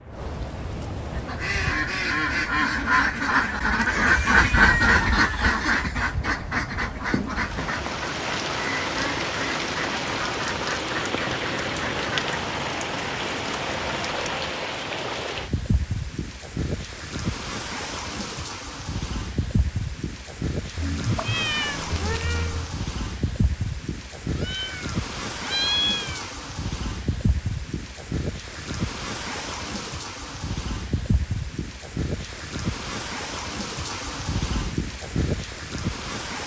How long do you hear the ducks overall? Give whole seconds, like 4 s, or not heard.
11 s.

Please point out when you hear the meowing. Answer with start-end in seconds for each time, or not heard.
4.3-5.5, 20.8-22.8, 24.4-26.2.